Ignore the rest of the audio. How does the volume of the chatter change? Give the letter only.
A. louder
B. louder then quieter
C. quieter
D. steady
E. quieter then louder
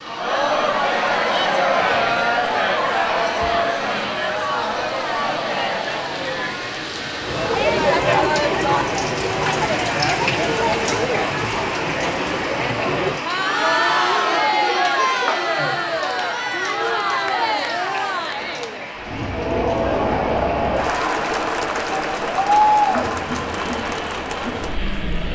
D.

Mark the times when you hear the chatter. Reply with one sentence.
The chatter can be heard from 0.0 to 25.3 s.